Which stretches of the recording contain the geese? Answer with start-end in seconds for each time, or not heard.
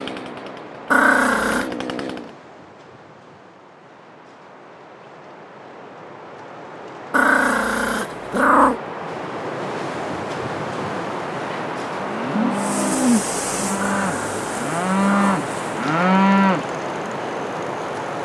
not heard.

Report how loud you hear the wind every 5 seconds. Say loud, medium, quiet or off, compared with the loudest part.
quiet, medium, loud, loud.